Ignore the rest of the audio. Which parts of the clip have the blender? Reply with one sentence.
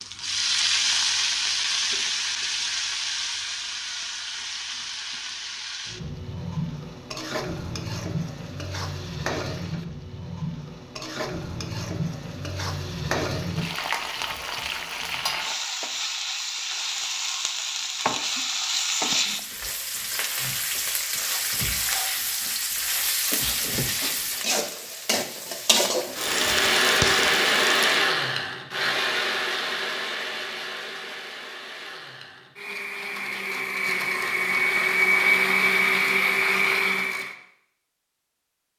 You can hear the blender from 26.1 to 37.4 s.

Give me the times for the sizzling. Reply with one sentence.
You can hear the sizzling from 0.0 to 28.1 s.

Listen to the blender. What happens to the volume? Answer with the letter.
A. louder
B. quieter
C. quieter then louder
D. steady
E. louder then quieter
C.